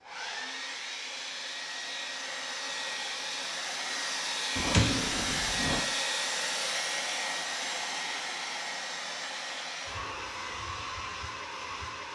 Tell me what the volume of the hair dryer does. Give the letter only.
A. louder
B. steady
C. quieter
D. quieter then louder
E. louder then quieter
E.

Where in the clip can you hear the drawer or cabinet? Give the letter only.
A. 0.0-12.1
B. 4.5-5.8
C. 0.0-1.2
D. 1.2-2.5
B.